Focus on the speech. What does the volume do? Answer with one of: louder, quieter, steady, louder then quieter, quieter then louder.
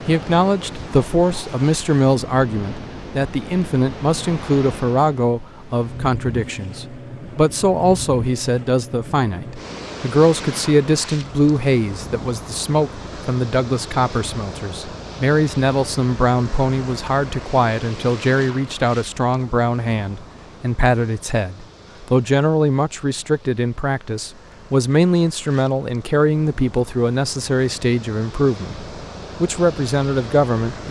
steady.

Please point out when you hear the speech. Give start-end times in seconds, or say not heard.
0.1-30.8.